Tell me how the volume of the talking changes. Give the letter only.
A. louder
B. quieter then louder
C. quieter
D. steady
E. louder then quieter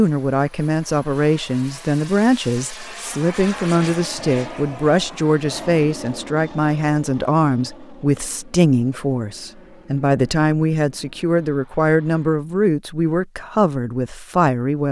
D.